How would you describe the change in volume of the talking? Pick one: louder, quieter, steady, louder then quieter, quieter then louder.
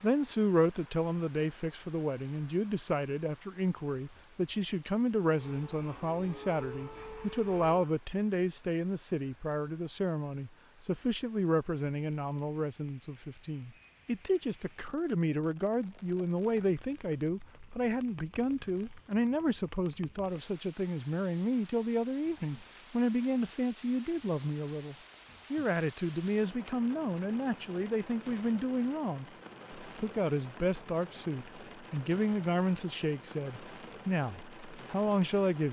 steady.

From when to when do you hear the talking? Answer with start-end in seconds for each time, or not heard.
0.0-35.6.